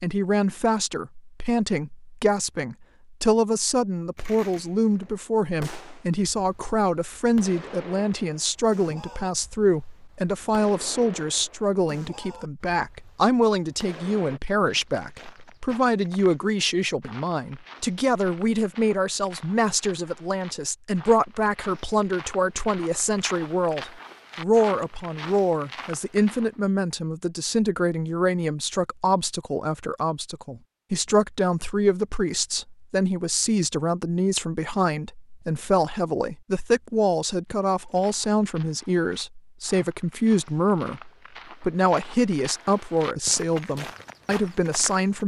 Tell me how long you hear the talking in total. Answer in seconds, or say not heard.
45 s.